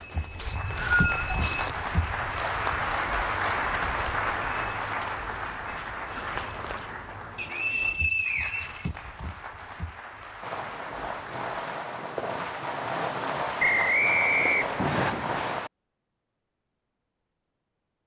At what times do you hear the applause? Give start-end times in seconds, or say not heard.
0.0-11.5.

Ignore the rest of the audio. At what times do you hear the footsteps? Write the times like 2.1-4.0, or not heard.
0.0-7.0.